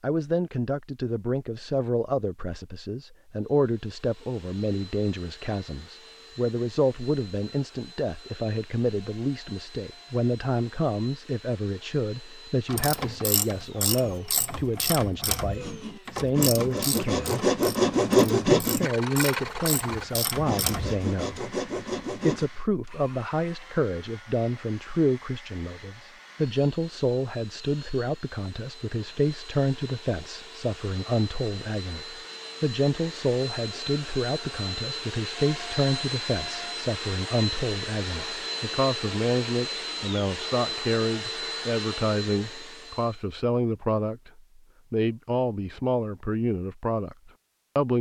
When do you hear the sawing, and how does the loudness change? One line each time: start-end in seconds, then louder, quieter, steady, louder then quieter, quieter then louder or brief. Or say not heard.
15.6-22.5 louder then quieter.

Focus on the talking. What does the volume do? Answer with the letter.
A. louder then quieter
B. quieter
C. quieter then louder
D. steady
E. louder
D.